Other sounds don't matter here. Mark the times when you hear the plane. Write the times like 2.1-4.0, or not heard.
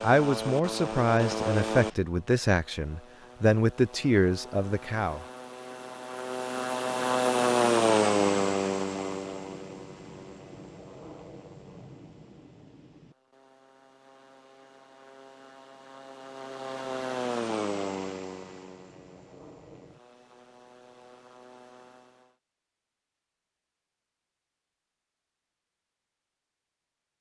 0.0-22.1.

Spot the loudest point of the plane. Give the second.
8 s.